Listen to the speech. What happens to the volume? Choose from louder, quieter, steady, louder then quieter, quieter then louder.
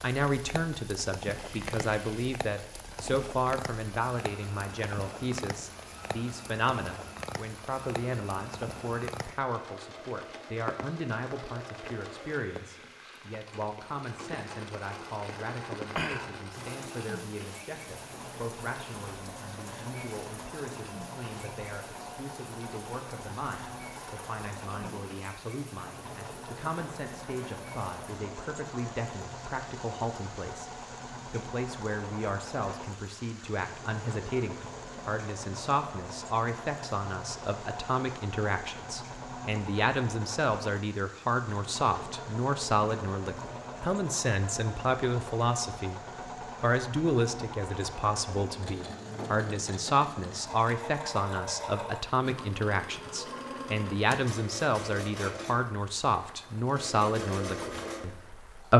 quieter then louder.